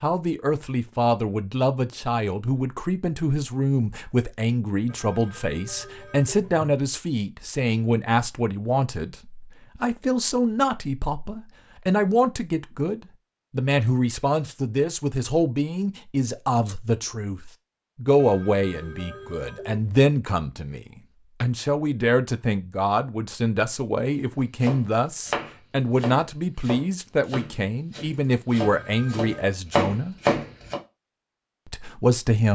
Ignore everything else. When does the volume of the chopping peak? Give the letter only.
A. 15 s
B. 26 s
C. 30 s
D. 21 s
C.